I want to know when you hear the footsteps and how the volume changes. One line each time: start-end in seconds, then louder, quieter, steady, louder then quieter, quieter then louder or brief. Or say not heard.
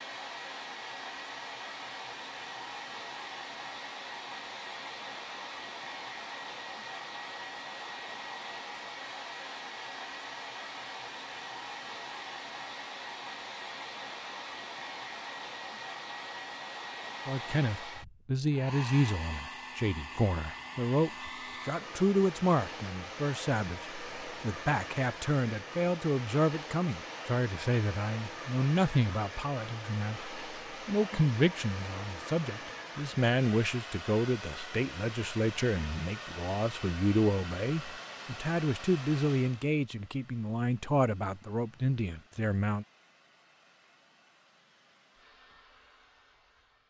not heard.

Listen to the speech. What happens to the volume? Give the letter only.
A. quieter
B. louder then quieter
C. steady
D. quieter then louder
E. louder
C.